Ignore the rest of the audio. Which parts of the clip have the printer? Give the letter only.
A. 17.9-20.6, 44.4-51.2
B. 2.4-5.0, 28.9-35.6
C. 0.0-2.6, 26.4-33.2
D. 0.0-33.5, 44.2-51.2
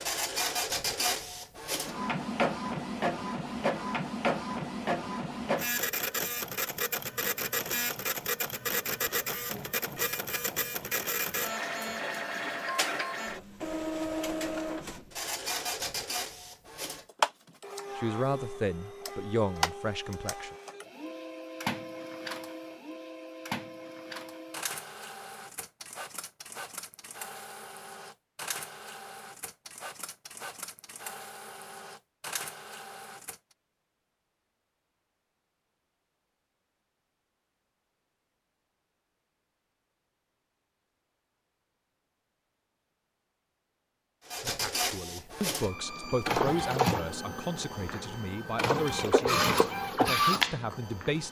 D.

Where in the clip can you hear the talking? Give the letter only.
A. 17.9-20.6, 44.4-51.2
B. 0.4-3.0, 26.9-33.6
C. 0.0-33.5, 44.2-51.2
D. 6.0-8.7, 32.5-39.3
A.